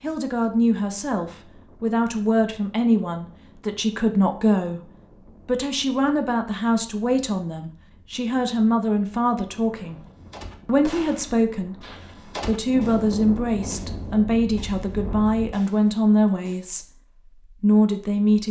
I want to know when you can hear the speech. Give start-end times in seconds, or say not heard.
0.0-10.1, 10.7-11.8, 12.4-18.4.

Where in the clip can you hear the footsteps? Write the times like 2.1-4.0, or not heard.
not heard.